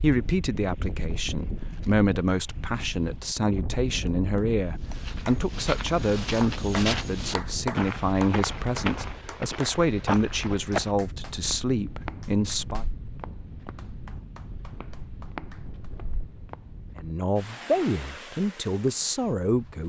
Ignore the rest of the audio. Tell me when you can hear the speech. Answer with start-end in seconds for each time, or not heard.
0.0-12.8, 16.9-19.8.